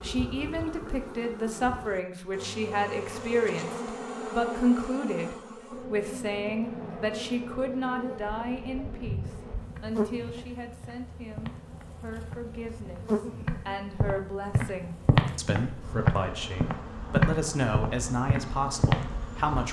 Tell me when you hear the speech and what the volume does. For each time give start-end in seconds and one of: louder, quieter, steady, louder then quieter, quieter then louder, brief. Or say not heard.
0.0-19.6 quieter then louder.